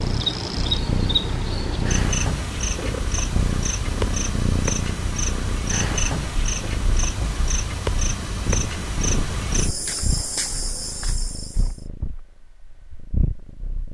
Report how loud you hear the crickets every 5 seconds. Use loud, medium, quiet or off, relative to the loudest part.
loud, loud, medium.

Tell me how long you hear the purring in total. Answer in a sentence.
The purring can be heard for 14 seconds in total.